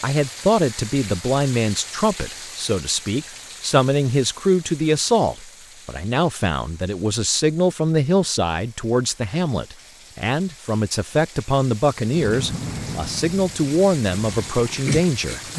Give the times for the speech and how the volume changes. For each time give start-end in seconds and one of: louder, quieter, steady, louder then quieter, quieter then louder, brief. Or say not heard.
0.0-15.4 steady.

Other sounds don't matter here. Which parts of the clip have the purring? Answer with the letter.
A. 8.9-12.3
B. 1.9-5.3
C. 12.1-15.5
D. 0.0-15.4
C.